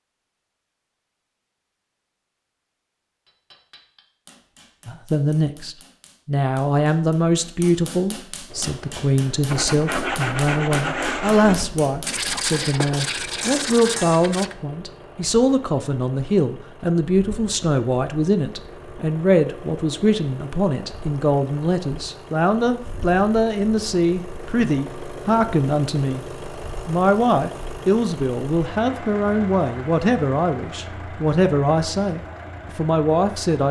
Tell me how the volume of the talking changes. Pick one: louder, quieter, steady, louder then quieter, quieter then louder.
steady.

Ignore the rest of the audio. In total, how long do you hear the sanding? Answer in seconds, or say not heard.
5 s.